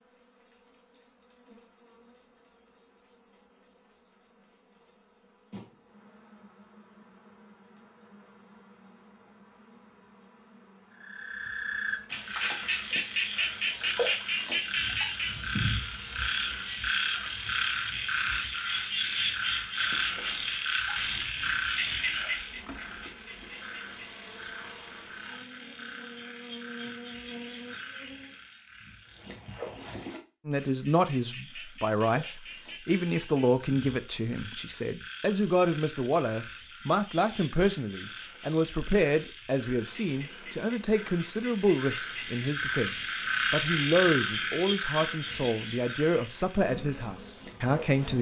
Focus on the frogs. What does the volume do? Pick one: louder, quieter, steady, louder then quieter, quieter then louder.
quieter then louder.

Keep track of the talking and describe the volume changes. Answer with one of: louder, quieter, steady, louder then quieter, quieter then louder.
steady.